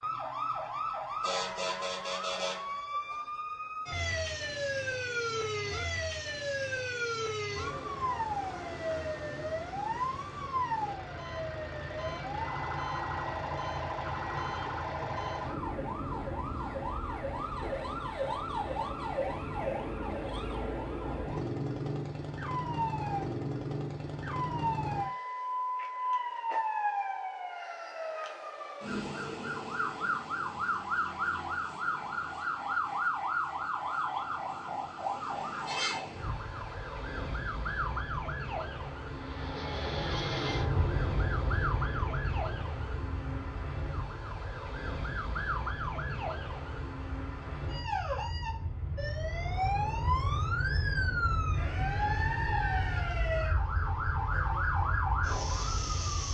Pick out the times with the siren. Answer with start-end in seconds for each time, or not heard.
0.0-56.3.